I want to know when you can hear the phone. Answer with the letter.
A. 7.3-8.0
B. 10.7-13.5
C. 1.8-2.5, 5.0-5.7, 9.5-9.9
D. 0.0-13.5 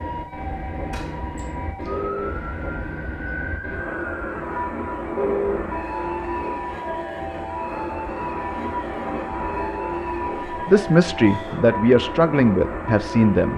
C.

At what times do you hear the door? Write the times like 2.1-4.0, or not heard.
0.9-1.6.